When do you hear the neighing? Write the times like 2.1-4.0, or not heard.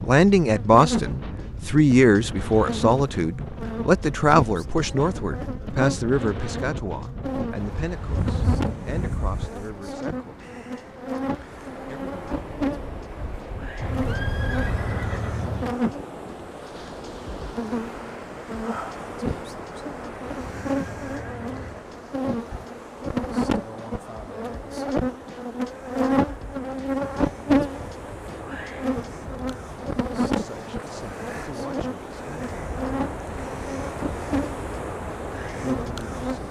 13.8-15.8, 20.4-21.8.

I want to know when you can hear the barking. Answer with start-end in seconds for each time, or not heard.
not heard.